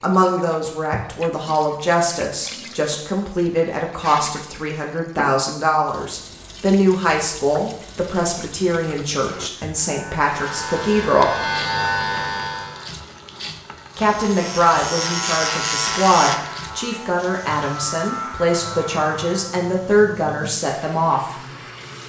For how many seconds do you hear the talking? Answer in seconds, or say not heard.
19 s.